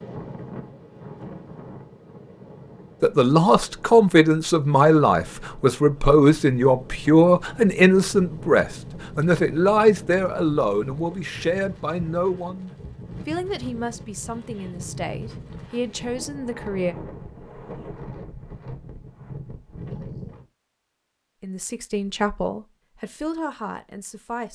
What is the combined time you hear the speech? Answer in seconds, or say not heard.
17 s.